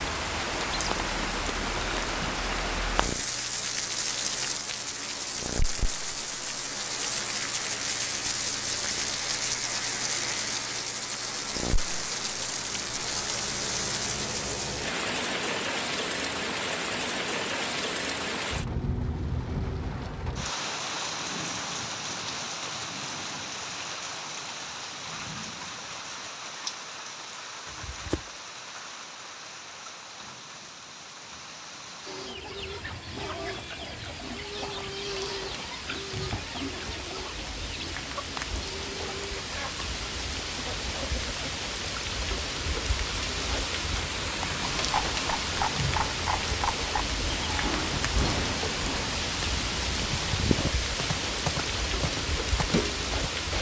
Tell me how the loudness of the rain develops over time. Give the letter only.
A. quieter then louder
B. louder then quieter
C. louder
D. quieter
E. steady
A.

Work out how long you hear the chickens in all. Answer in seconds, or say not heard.
9 s.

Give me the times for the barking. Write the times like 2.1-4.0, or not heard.
not heard.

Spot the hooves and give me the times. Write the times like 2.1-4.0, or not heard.
44.8-53.4.